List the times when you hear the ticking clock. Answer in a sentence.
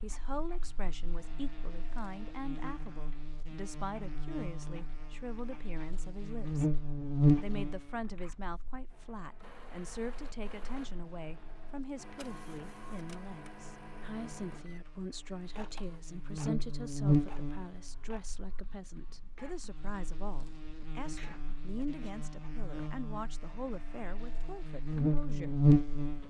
The ticking clock can't be heard in this clip.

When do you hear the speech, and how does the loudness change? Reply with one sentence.
The speech can be heard from 0.0 to 25.6 s, at a steady volume.